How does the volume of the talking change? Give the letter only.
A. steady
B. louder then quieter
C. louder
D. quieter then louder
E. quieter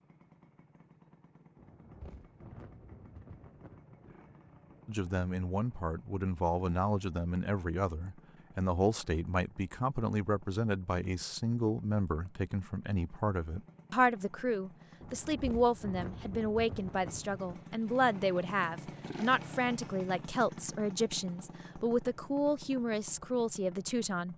A.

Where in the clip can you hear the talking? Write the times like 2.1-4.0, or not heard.
4.8-24.3.